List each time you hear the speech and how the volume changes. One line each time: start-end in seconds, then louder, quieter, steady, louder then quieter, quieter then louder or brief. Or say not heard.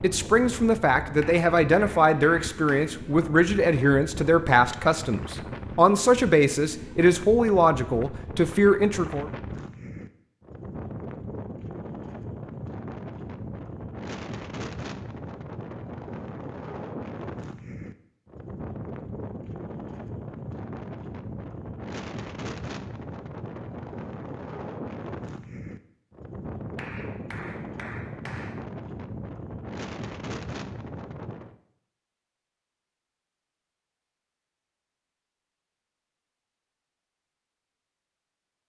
0.0-9.2 steady.